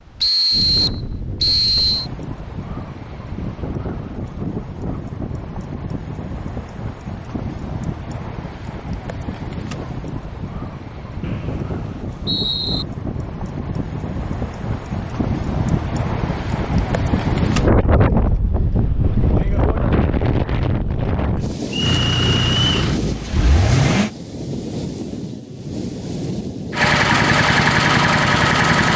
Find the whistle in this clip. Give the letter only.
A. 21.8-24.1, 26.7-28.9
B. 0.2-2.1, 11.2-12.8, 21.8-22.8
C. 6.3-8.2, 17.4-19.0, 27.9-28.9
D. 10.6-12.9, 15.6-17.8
B.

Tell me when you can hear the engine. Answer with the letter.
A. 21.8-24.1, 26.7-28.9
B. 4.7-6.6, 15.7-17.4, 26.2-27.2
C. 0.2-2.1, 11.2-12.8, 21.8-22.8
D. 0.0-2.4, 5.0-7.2
A.